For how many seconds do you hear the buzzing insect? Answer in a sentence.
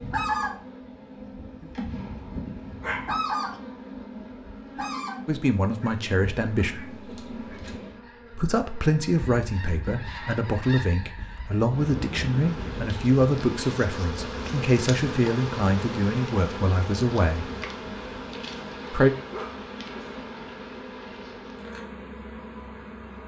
The buzzing insect can be heard for 23 seconds in total.